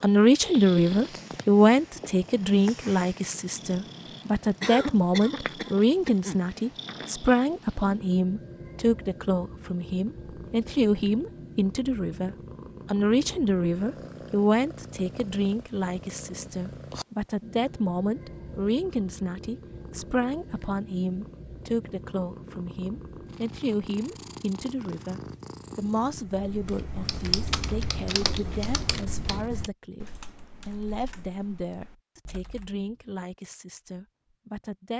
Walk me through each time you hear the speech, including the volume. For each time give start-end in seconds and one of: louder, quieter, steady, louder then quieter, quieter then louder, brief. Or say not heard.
0.0-34.9 quieter.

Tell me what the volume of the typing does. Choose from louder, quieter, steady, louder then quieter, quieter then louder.
quieter.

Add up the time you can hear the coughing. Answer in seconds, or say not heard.
2 s.